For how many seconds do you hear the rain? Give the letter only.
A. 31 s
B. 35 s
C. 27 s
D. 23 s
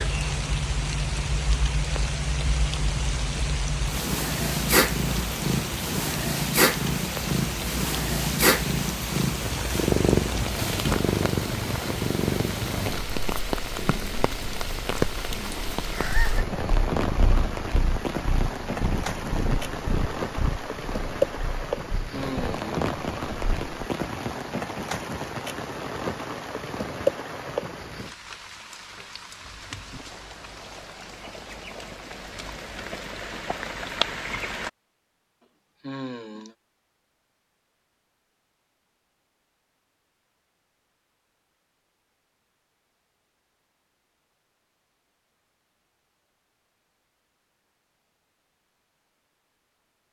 B.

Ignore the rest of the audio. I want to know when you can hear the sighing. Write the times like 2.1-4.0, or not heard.
22.1-22.8, 35.8-36.5.